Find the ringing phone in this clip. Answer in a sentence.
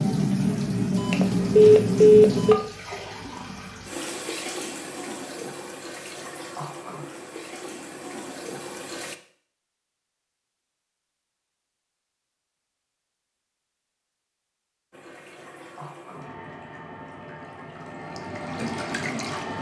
The ringing phone can be heard from 0.9 to 2.6 s.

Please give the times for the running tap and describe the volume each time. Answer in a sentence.
The running tap can be heard from 0.0 to 9.2 s, getting quieter; and from 14.9 to 19.5 s, getting louder.